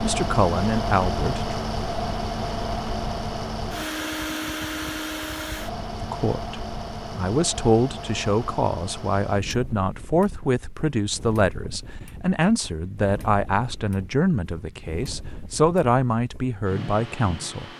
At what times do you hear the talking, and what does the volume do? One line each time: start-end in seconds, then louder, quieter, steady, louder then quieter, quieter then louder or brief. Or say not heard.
0.0-1.6 brief
6.0-17.7 steady.